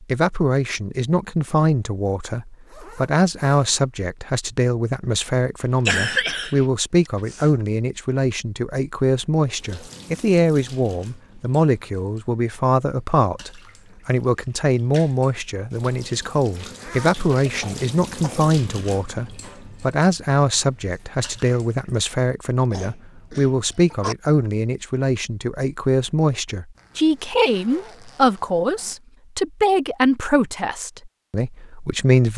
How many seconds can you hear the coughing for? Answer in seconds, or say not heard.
4 s.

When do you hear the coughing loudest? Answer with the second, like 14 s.
6 s.